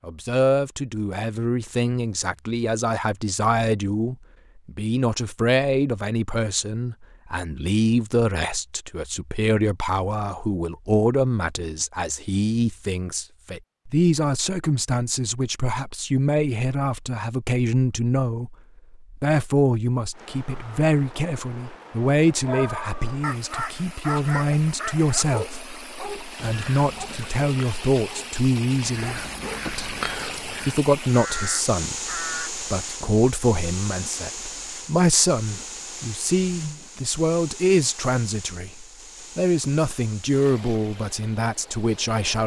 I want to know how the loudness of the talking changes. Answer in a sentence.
The volume of the talking stays about the same.